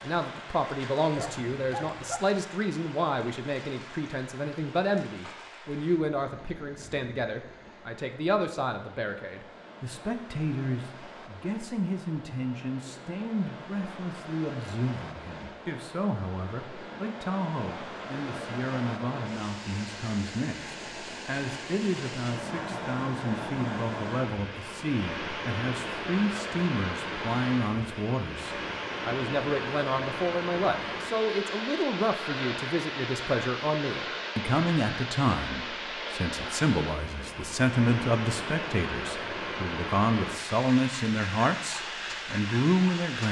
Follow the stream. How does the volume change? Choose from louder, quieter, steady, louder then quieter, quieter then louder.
louder.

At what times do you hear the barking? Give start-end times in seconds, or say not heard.
1.1-2.2.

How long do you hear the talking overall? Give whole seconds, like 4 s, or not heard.
43 s.